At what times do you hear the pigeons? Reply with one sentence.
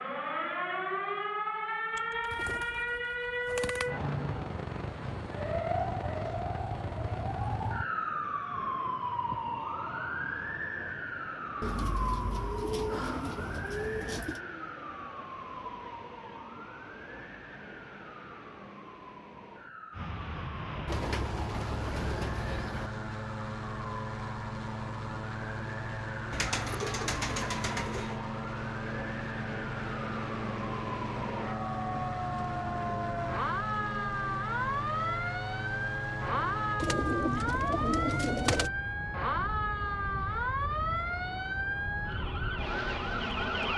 You can hear the pigeons from 1.9 to 3.9 s, from 11.6 to 14.4 s, from 20.9 to 22.9 s, from 26.3 to 28.1 s and from 36.8 to 38.7 s.